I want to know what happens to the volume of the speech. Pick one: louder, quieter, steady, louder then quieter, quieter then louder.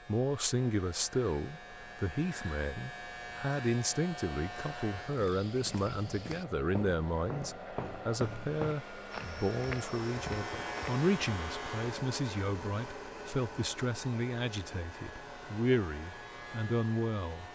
steady.